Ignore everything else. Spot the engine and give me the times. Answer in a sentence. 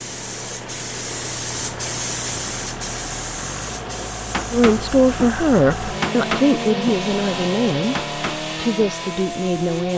You can hear the engine from 0.0 to 9.9 s.